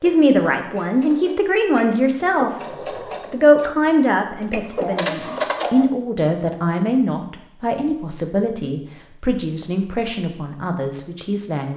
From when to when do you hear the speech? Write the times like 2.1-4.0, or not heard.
0.0-2.5, 3.3-11.7.